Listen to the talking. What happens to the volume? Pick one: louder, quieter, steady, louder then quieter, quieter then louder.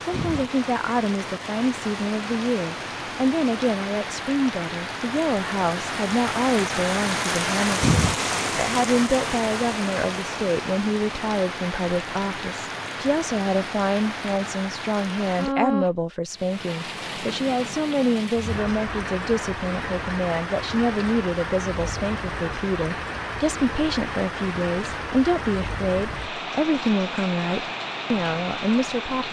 steady.